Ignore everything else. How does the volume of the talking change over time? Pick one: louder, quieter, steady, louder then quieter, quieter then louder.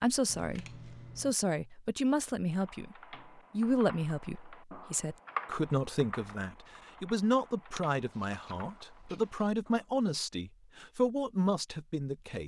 steady.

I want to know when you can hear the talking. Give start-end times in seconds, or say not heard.
0.0-12.4.